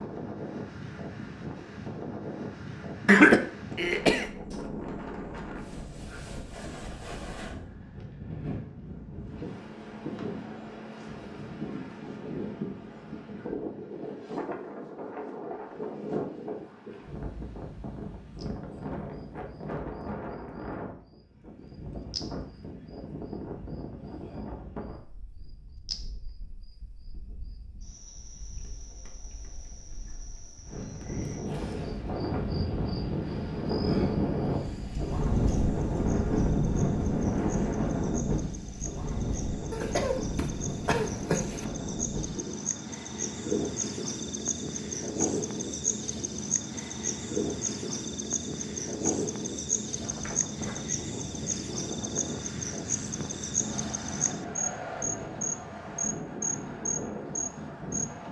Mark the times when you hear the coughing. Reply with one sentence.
You can hear the coughing from 3.0 to 4.2 s and from 39.7 to 41.6 s.